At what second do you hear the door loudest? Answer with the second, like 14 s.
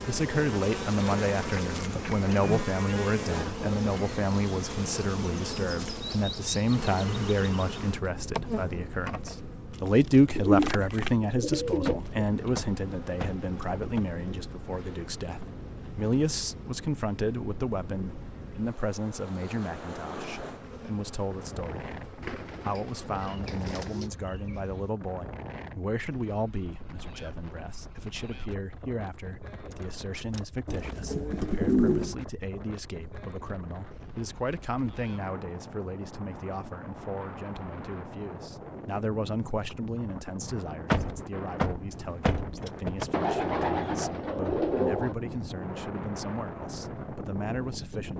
41 s.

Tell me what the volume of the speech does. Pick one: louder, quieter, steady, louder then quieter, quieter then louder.
quieter.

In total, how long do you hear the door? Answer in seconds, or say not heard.
6 s.